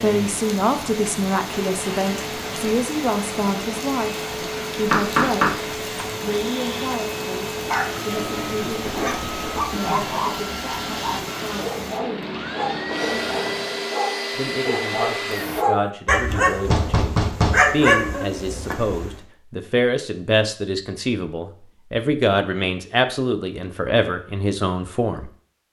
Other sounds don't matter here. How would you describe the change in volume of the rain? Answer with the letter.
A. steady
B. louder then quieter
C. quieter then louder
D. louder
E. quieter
A.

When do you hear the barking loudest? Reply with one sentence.
The loudest moment of the barking is at 18 seconds.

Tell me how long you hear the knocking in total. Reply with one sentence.
The knocking can be heard for 2 seconds in total.